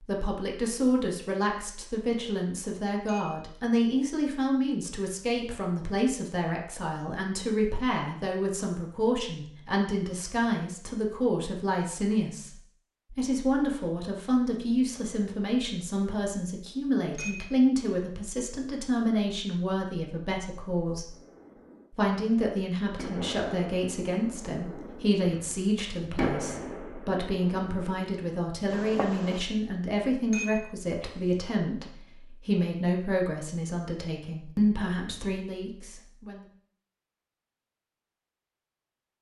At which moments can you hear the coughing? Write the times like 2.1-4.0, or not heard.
not heard.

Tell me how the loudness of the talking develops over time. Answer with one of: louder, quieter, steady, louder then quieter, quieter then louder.
steady.